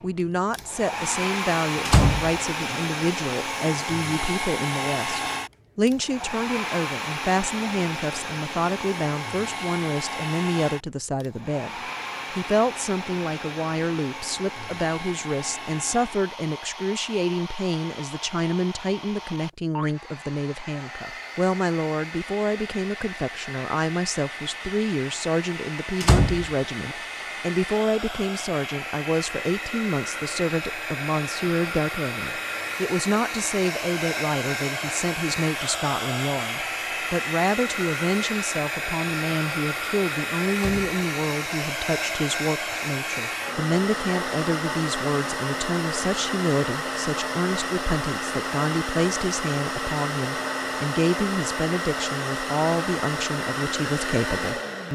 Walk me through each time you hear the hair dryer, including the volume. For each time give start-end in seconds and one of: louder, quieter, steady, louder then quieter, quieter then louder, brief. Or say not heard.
0.0-54.9 quieter then louder.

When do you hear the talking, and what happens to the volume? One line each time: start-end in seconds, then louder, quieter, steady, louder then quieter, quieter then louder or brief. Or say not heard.
0.0-54.9 steady.